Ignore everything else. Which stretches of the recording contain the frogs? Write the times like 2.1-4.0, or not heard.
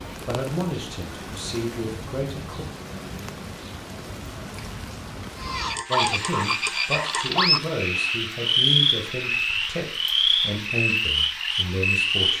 5.4-12.3.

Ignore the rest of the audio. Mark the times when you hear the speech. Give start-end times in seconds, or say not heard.
0.2-2.6, 5.8-12.3.